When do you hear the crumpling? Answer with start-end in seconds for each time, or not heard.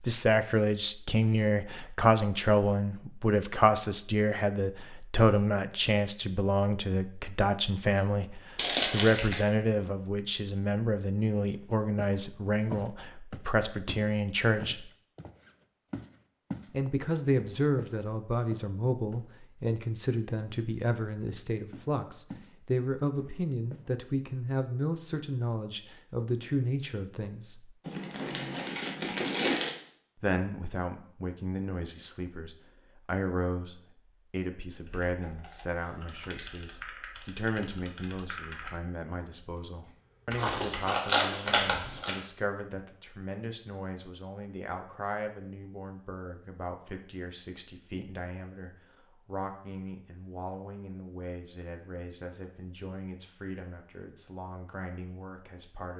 8.6-9.4, 27.9-29.7, 40.4-42.2.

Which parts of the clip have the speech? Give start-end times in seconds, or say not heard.
0.0-14.9, 16.7-27.8, 30.1-55.9.